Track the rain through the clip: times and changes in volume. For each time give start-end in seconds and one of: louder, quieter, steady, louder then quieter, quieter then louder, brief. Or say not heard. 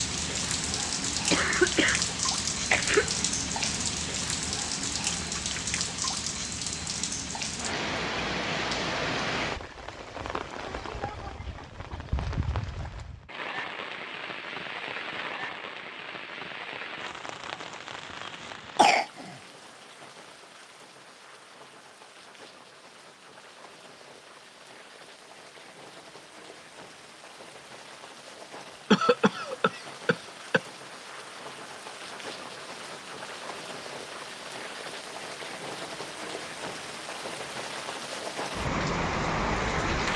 0.0-40.1 quieter then louder.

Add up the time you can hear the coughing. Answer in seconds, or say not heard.
4 s.